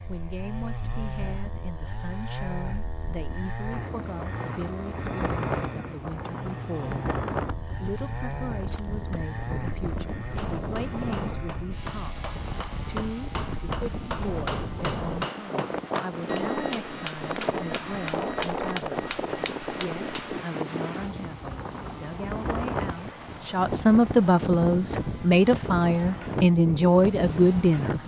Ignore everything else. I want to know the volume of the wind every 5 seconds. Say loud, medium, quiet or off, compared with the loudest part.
medium, loud, loud, loud, loud, loud.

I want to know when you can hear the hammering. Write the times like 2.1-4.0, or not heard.
10.3-20.4.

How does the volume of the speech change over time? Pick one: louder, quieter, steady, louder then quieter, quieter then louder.
louder.